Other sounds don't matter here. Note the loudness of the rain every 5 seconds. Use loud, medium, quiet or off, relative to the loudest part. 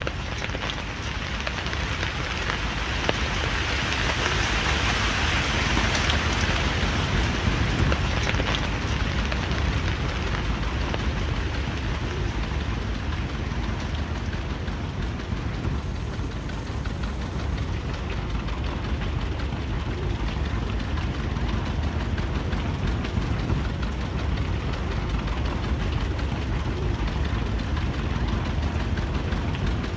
loud, loud, medium, quiet, quiet, quiet.